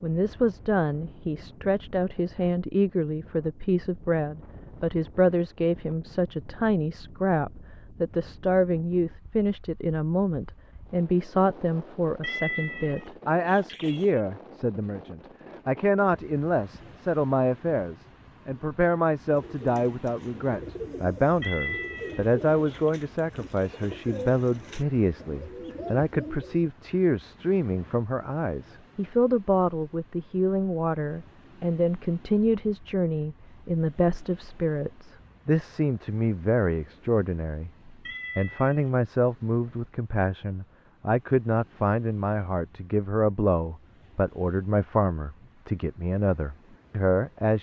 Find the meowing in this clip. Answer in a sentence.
The meowing can be heard from 12.2 to 14.2 s, from 21.4 to 22.9 s and from 38.0 to 38.9 s.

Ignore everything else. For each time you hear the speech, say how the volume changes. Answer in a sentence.
You can hear the speech from 0.0 to 47.5 s, at a steady volume.